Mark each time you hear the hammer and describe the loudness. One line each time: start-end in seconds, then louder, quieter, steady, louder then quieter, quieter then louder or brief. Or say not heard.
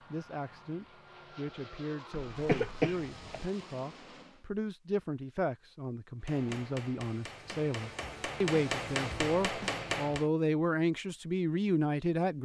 6.2-10.3 louder.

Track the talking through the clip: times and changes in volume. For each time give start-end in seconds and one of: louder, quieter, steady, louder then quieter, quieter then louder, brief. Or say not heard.
0.0-12.4 louder.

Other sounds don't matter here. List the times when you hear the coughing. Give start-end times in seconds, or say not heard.
2.1-3.5.